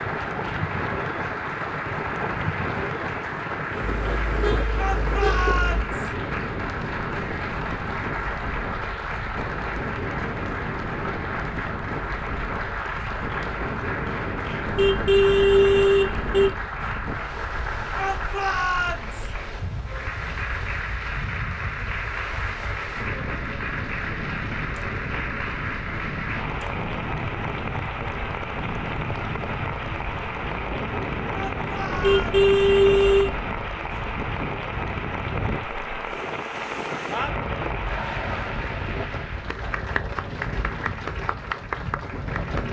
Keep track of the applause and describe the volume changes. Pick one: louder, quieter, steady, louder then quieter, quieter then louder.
steady.